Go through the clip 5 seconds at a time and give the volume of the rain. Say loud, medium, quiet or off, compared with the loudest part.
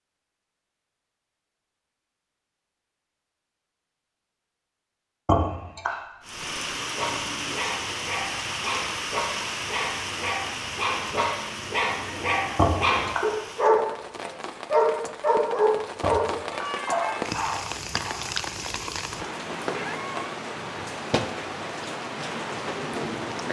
off, loud, medium, loud, loud.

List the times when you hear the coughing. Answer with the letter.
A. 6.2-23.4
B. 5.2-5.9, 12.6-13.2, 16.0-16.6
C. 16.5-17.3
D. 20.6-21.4
B.